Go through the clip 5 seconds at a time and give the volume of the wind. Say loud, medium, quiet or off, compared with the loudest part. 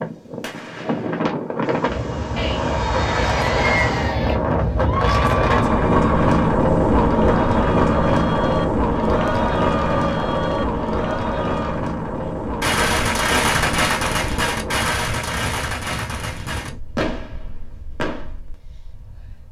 medium, loud, medium, quiet.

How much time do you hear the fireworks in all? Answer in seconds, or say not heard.
10 s.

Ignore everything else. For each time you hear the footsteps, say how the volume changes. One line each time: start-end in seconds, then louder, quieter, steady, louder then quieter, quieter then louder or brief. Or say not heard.
not heard.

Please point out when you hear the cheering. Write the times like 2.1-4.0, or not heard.
2.4-11.8.